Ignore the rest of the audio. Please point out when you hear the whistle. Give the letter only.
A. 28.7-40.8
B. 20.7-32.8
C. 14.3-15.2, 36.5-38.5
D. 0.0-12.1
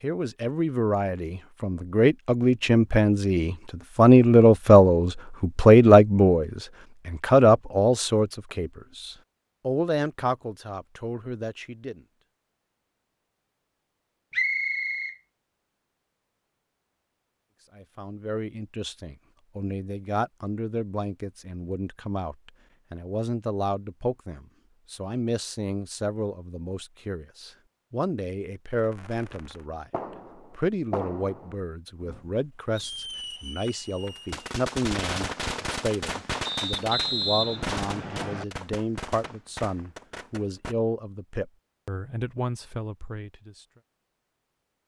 C.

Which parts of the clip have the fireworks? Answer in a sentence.
You can hear the fireworks from 28.7 to 40.8 s.